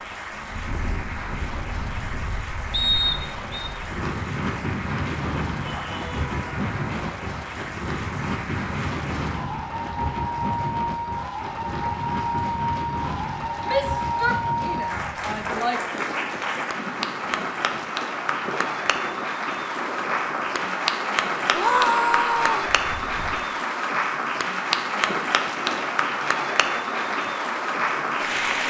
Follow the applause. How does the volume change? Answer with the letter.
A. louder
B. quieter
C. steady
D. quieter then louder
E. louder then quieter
A.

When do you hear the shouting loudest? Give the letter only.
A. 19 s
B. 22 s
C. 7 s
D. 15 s
B.